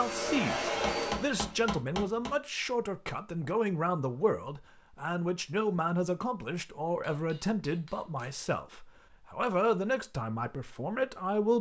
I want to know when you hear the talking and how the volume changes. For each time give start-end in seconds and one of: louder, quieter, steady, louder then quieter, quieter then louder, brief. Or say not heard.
0.0-11.5 steady.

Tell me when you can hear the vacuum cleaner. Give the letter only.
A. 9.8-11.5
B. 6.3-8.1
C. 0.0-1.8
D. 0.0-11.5
C.